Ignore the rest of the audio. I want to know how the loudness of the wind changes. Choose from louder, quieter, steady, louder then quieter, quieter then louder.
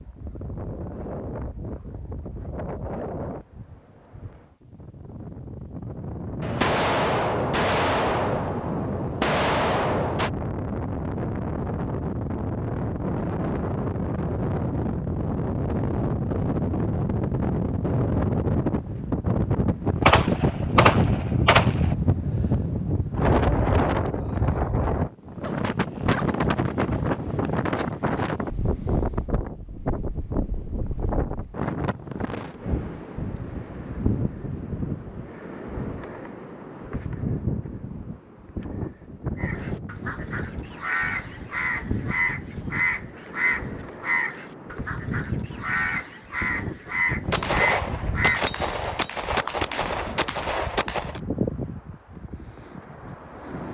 louder then quieter.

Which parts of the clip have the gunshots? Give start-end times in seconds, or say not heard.
6.4-10.3, 20.1-21.9, 47.3-51.2.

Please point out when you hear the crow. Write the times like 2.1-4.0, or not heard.
39.4-48.5.